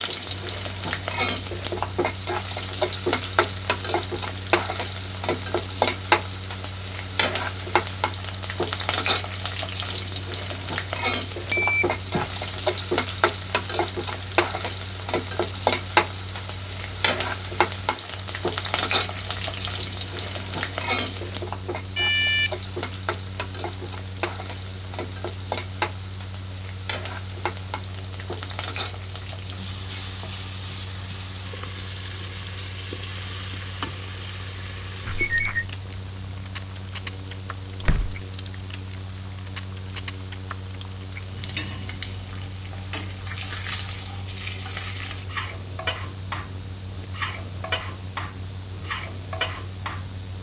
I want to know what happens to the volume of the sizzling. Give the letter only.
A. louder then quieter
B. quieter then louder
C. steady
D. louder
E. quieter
E.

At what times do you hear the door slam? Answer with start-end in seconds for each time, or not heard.
37.8-38.2.